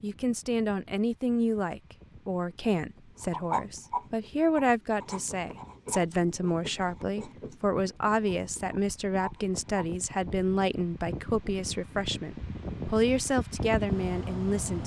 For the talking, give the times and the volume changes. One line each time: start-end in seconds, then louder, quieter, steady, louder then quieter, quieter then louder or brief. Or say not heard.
0.0-14.8 steady.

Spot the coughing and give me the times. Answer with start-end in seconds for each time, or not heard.
not heard.